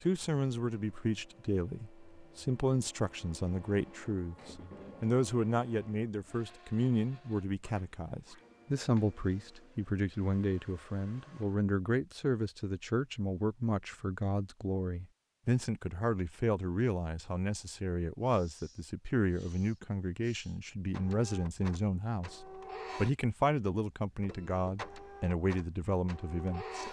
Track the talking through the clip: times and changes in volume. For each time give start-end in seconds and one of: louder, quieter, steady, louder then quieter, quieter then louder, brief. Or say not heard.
0.0-26.8 steady.